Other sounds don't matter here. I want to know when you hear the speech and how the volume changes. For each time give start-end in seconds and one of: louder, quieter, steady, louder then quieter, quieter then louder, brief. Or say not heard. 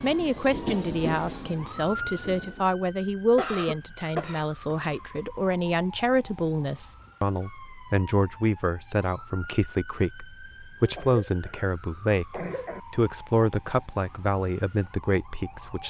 0.0-15.8 steady.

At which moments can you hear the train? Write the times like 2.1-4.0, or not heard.
0.0-2.6.